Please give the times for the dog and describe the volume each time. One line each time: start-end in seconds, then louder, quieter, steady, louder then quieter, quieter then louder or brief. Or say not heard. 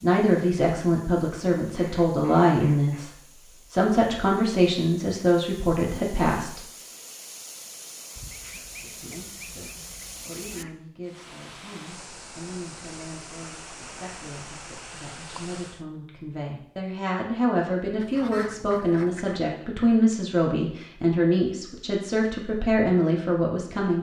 not heard.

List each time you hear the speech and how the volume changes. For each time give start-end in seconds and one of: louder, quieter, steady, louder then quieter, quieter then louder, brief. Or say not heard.
0.0-6.6 steady
8.8-23.9 louder.